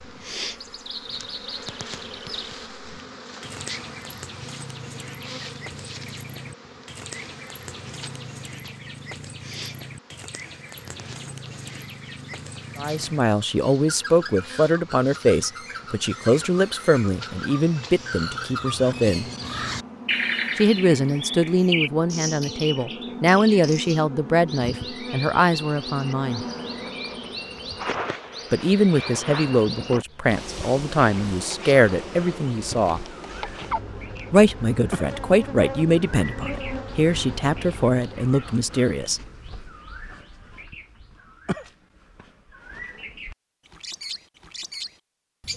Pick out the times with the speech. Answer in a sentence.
The speech can be heard from 12.8 to 19.2 s, from 20.6 to 26.4 s, from 28.5 to 33.0 s and from 34.3 to 39.2 s.